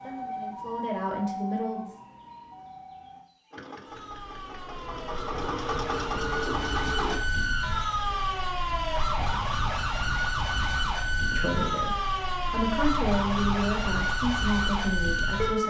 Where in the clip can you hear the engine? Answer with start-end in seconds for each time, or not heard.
3.5-7.2.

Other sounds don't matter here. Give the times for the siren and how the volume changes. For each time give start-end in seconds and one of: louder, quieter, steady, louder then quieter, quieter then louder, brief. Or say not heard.
0.0-15.6 louder.